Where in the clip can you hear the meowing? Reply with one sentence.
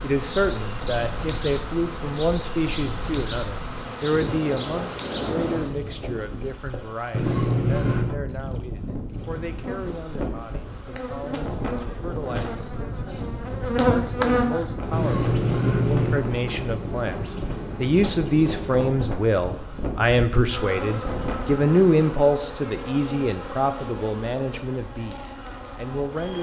You can hear the meowing from 7.1 to 8.2 s and from 14.9 to 16.2 s.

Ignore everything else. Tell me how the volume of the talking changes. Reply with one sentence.
The volume of the talking goes down, then up.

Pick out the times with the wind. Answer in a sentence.
You can hear the wind from 0.1 to 21.6 s.